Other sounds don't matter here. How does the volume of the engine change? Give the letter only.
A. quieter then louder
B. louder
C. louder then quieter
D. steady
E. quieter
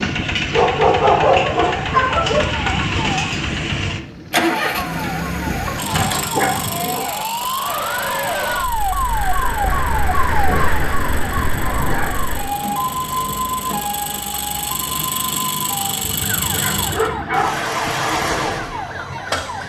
A.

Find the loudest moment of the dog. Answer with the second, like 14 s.
1 s.